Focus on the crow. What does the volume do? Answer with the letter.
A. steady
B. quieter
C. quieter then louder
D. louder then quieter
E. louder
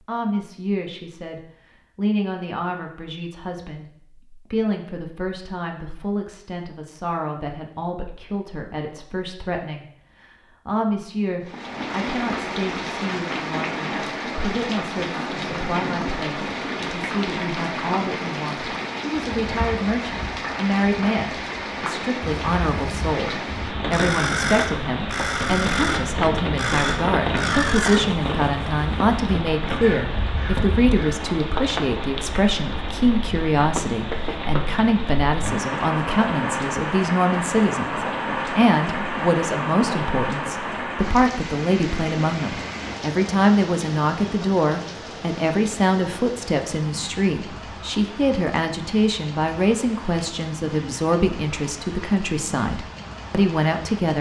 B.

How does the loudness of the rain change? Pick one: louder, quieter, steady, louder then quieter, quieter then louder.
quieter.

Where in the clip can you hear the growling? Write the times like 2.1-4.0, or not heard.
not heard.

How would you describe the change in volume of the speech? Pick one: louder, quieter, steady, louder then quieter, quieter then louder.
louder.